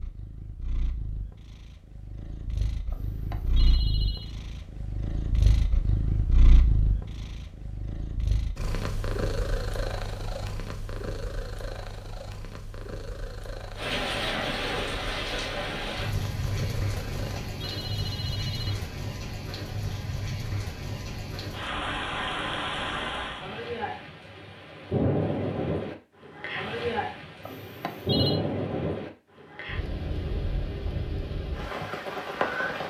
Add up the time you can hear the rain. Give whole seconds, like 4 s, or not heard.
19 s.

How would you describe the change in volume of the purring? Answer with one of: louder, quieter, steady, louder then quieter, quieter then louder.
louder then quieter.